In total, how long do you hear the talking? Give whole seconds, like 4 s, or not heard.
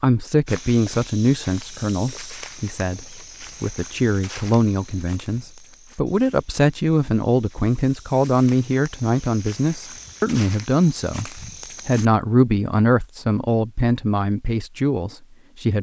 16 s.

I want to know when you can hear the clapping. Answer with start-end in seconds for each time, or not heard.
not heard.